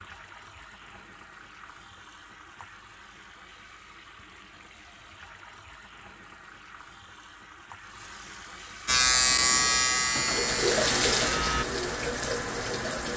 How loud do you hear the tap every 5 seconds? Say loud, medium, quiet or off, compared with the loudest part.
quiet, quiet, loud.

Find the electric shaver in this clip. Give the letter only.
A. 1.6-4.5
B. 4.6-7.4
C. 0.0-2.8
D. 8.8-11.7
D.